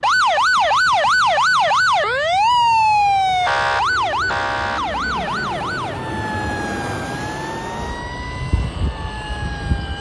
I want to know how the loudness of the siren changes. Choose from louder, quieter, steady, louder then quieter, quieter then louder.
quieter.